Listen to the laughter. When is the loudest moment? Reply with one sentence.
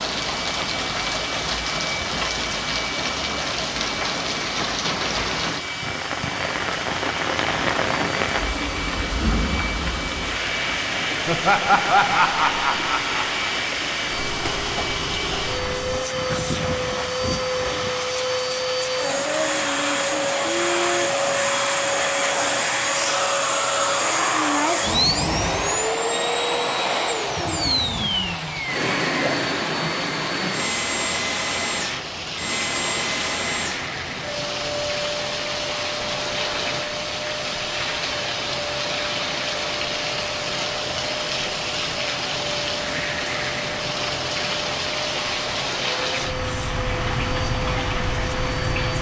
The volume of the laughter peaks at 12 seconds.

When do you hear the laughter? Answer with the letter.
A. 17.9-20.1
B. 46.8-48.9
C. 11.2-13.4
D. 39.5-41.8
C.